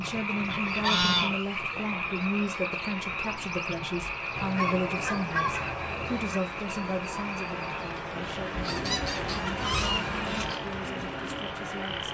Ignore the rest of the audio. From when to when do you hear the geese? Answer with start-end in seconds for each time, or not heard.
0.5-1.9, 4.3-6.4, 8.6-10.6.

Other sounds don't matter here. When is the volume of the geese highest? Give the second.
1 s.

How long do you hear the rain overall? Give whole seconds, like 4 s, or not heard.
12 s.